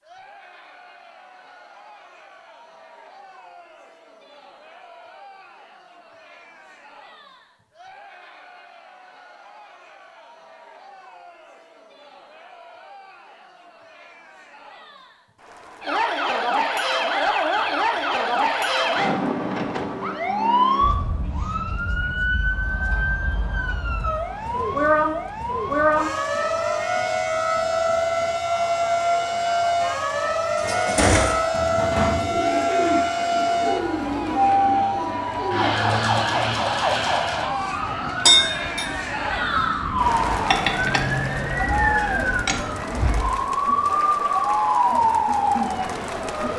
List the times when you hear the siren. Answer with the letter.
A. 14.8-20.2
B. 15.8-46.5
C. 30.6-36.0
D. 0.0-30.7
B.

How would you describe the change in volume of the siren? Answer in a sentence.
The loudness of the siren stays about the same.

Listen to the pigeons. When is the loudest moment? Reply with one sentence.
The volume of the pigeons peaks at 31 seconds.